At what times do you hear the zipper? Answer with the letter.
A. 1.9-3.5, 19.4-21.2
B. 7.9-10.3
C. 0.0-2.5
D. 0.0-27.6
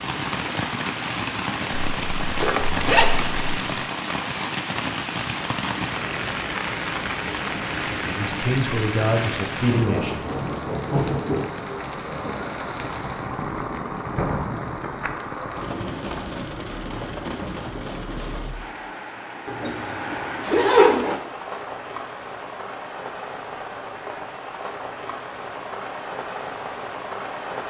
A.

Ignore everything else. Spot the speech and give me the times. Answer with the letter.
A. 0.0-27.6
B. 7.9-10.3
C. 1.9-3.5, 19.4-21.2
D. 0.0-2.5
B.